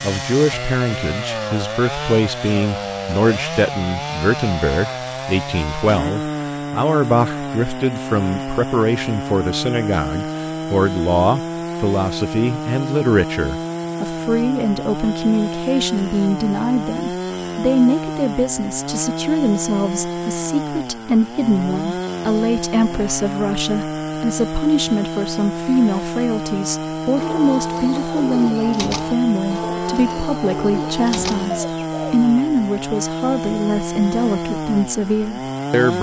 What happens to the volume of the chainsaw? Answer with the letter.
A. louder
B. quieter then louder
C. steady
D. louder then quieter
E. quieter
C.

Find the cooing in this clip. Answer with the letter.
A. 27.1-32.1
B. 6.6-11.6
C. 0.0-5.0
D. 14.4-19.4
A.